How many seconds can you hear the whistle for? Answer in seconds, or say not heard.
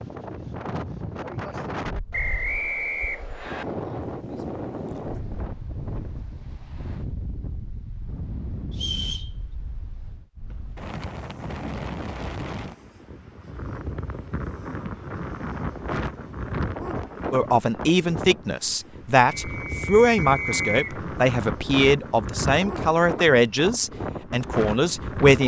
4 s.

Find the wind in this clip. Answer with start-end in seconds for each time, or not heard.
0.0-25.4.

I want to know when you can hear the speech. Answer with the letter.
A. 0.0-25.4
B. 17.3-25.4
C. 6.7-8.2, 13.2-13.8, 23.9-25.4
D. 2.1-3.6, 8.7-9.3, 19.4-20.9
B.